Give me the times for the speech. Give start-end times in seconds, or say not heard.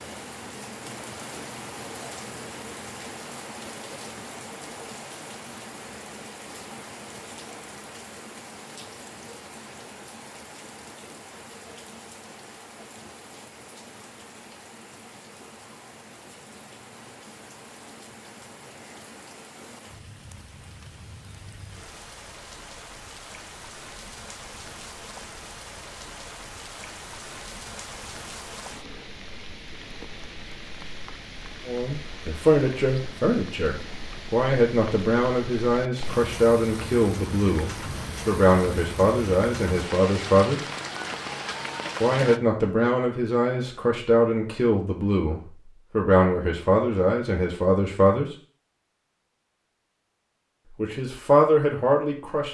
31.6-40.6, 42.0-48.2, 50.8-52.5.